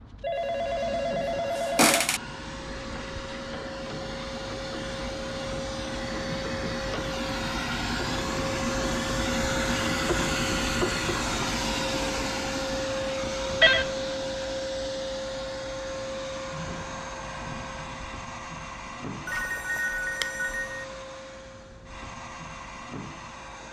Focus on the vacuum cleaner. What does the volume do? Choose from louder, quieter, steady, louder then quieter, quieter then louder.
louder then quieter.